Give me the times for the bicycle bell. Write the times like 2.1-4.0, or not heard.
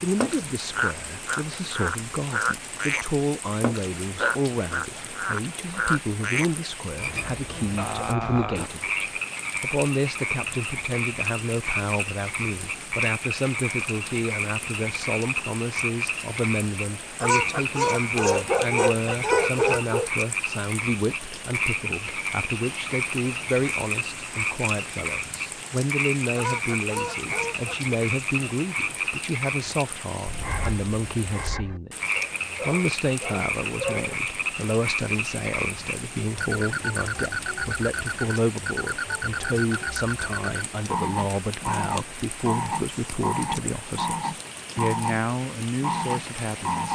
not heard.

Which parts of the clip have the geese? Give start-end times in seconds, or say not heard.
17.2-20.0, 26.4-27.8.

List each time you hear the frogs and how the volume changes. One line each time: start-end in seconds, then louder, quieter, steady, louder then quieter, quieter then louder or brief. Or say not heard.
0.0-45.2 steady
45.8-46.8 brief.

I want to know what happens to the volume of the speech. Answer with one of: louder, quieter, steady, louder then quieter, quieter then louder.
steady.